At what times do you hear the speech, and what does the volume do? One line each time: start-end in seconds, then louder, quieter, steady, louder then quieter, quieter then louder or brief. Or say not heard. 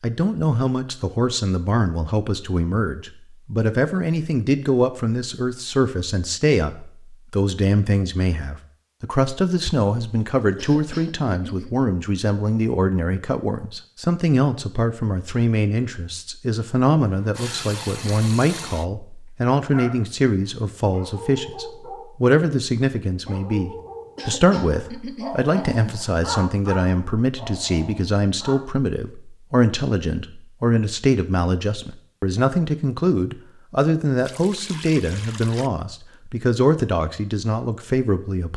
0.0-38.5 steady.